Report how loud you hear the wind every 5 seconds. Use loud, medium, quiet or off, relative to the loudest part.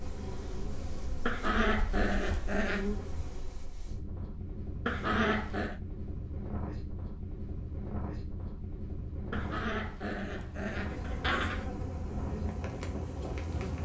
medium, loud, loud.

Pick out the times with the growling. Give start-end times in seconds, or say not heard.
1.2-2.9, 4.8-5.8, 9.3-11.7.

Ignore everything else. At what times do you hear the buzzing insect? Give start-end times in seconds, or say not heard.
0.0-3.8, 10.8-13.7.